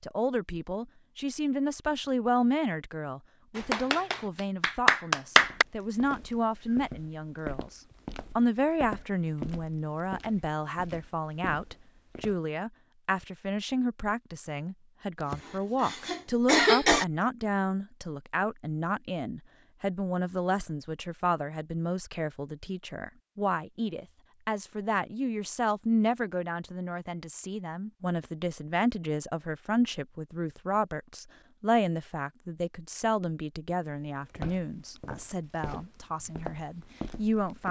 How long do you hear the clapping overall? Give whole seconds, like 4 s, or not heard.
2 s.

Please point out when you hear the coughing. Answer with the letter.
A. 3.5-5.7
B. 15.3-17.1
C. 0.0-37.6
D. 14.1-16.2
B.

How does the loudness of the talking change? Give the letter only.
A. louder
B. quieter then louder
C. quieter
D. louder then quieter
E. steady
E.